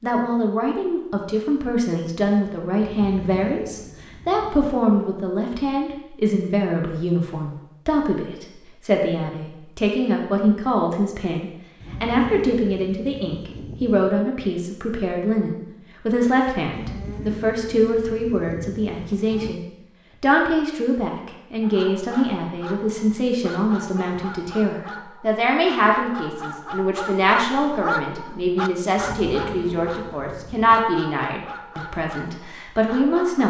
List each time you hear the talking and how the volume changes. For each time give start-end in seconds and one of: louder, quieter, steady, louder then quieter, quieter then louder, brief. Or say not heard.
0.0-33.4 steady.